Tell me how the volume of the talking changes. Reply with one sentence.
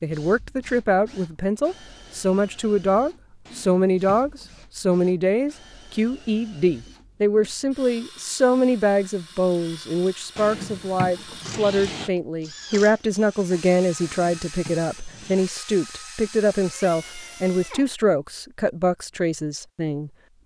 The loudness of the talking stays about the same.